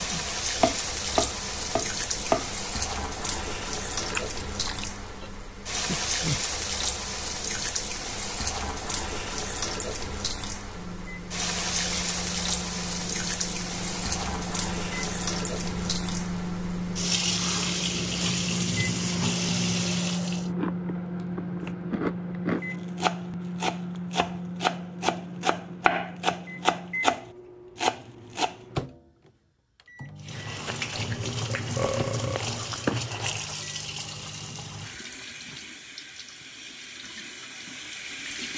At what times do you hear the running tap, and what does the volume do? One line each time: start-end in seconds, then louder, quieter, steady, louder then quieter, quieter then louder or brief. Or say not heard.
0.0-20.5 steady
30.2-38.5 quieter.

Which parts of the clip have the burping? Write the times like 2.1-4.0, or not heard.
5.8-6.5, 31.5-32.5.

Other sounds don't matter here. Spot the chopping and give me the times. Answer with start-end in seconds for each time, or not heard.
0.0-2.6, 22.7-28.6.